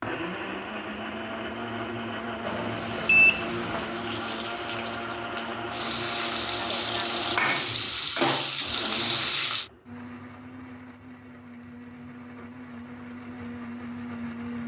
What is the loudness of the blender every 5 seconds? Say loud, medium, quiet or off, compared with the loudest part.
loud, loud, medium.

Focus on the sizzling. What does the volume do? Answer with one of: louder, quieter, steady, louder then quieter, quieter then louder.
louder.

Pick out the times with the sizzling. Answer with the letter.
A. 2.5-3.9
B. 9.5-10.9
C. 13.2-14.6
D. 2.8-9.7
D.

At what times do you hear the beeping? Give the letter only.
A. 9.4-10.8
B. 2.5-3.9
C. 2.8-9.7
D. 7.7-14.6
B.